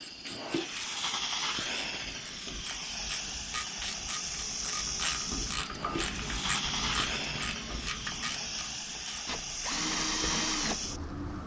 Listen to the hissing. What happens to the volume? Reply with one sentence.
The volume of the hissing stays about the same.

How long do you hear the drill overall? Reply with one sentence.
The drill can be heard for 2 seconds in total.